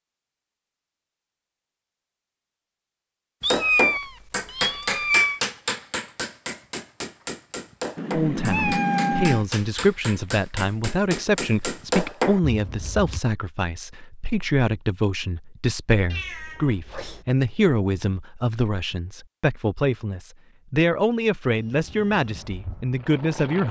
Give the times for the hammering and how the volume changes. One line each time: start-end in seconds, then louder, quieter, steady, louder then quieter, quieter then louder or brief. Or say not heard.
3.5-13.2 quieter then louder.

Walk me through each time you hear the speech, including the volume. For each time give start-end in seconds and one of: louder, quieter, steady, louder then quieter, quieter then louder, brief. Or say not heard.
8.1-23.6 steady.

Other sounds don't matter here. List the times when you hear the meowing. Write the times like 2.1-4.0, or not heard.
3.4-5.4, 8.0-9.4, 16.1-17.2.